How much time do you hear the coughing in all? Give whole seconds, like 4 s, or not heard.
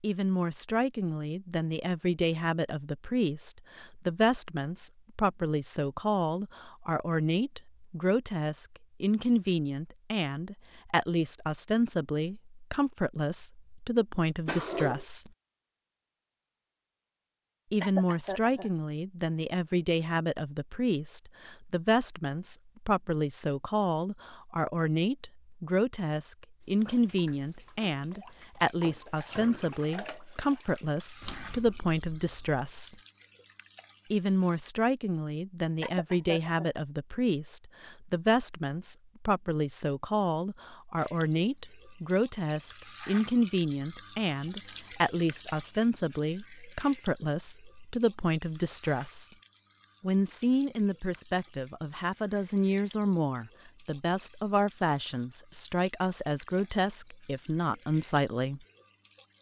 2 s.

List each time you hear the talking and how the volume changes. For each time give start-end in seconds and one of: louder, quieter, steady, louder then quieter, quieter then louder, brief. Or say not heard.
0.0-15.3 steady
17.7-33.0 steady
34.1-49.3 steady
50.0-58.6 steady.